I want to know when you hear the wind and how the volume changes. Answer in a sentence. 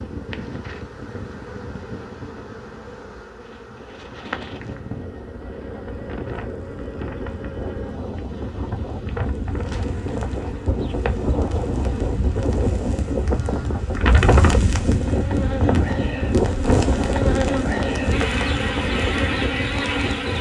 The wind can be heard from 0.0 to 20.3 s, getting louder.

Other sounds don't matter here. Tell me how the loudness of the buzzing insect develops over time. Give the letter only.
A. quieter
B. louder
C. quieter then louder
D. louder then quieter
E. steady
B.